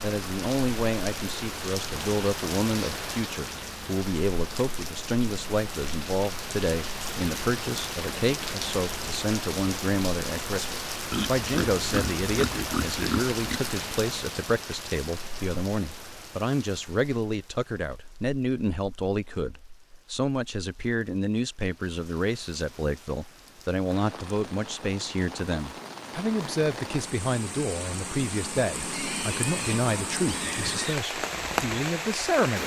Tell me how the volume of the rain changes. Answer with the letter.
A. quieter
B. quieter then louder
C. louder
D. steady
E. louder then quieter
B.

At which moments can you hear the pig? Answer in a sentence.
The pig can be heard from 11.1 to 13.6 s and from 28.9 to 31.0 s.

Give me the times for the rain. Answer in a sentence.
You can hear the rain from 0.0 to 32.6 s.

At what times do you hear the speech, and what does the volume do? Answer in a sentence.
You can hear the speech from 0.0 to 32.6 s, at a steady volume.